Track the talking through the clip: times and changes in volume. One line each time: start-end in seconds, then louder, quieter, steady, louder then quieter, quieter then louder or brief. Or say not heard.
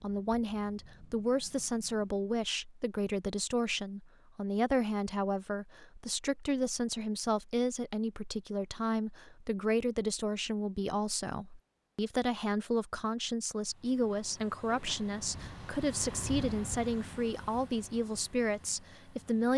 0.0-19.5 steady.